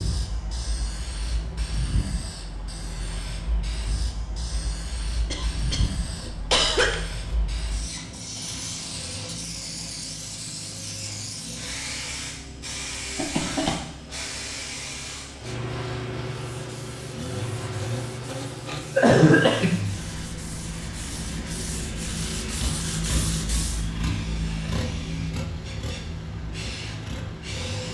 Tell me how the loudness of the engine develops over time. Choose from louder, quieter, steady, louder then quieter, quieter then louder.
louder.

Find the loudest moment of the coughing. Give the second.
19 s.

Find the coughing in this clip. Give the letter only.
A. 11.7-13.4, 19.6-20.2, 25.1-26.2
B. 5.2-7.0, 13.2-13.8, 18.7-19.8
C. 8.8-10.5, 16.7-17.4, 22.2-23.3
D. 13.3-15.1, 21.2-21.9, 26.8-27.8
B.